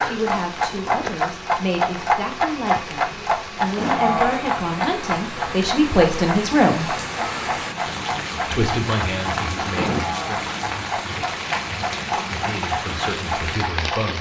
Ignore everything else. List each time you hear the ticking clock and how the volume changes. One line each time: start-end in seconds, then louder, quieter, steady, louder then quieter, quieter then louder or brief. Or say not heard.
0.0-14.1 quieter.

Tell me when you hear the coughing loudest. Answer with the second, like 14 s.
4 s.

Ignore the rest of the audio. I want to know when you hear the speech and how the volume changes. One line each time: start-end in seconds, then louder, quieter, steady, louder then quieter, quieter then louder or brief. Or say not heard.
0.0-7.0 louder
8.5-10.4 brief
12.3-14.1 brief.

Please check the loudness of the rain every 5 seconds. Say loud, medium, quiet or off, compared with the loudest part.
medium, loud, loud.